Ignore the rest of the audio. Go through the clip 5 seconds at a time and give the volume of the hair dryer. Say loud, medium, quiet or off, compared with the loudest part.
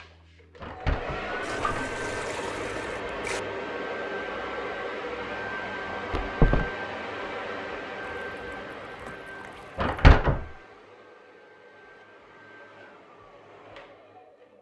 loud, loud, quiet.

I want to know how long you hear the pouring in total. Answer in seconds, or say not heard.
4 s.